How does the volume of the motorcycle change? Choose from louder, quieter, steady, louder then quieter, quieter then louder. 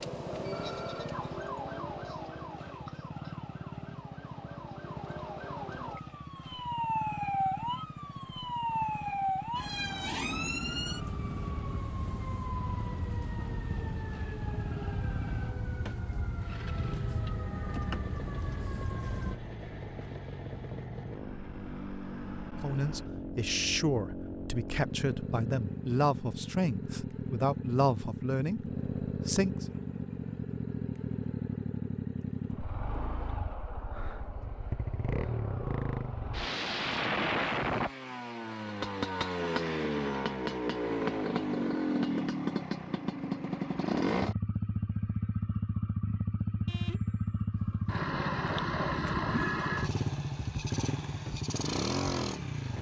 louder.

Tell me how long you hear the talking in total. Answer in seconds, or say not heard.
7 s.